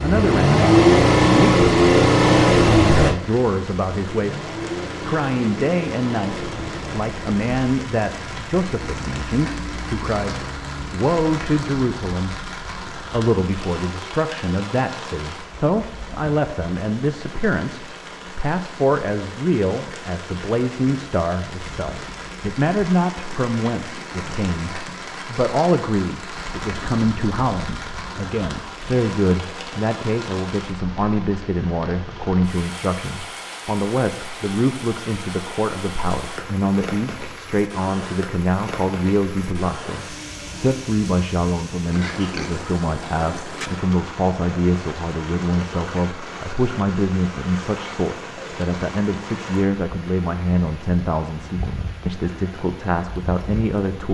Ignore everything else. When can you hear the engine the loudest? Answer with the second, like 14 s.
1 s.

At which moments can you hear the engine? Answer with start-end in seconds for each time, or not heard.
0.0-11.1.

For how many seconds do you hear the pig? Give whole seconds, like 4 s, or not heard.
2 s.